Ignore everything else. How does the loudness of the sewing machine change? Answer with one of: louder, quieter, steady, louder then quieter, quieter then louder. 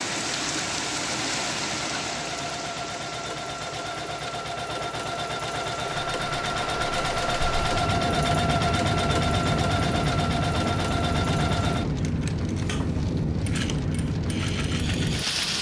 louder then quieter.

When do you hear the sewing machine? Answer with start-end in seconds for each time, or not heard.
0.0-15.5.